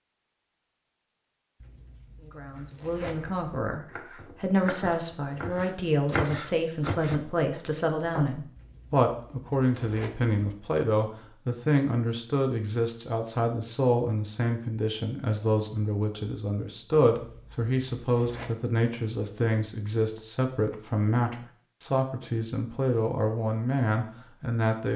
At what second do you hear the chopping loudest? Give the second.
6 s.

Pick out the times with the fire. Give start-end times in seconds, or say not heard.
not heard.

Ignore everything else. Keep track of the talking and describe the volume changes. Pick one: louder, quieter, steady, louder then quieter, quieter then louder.
steady.